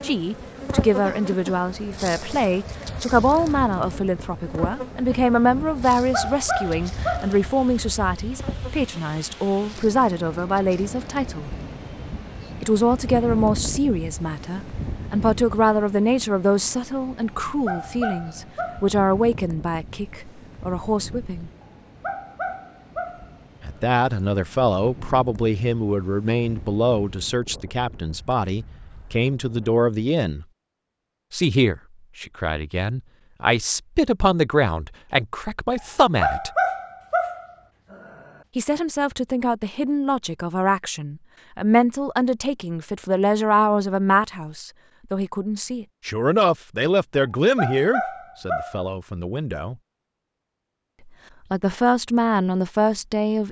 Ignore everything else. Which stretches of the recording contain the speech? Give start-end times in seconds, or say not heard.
0.0-11.5, 12.6-21.5, 23.6-30.4, 31.3-36.5, 38.5-49.8, 51.5-53.4.